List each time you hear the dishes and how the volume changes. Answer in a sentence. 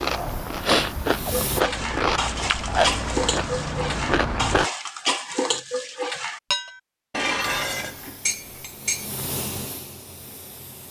You can hear the dishes from 1.2 to 9.1 s, at a steady volume.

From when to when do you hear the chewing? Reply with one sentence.
You can hear the chewing from 0.0 to 4.7 s.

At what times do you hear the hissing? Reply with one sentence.
You can hear the hissing from 0.1 to 1.6 s and from 7.6 to 10.8 s.